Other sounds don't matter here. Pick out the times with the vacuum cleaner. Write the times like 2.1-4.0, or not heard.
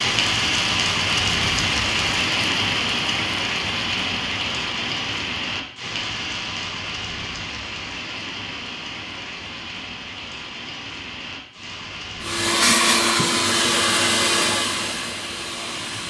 12.2-16.0.